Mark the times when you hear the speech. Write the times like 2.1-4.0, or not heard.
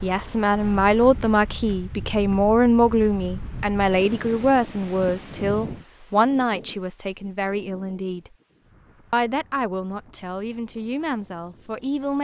0.0-8.3, 9.1-12.1.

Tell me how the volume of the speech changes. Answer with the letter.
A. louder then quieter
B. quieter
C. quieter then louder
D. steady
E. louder
B.